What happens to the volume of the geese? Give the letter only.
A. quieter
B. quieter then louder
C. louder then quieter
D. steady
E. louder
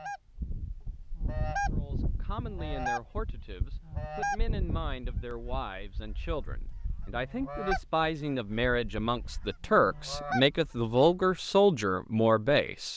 A.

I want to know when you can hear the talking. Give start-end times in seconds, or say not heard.
1.7-12.9.